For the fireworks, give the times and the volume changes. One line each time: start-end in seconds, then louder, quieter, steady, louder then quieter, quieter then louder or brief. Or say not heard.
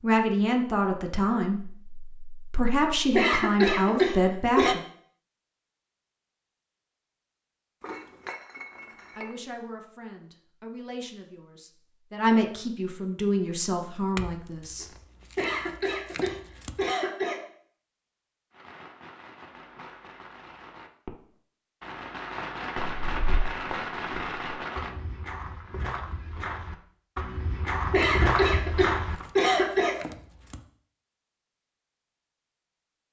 18.5-24.9 louder.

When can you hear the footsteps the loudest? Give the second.
28 s.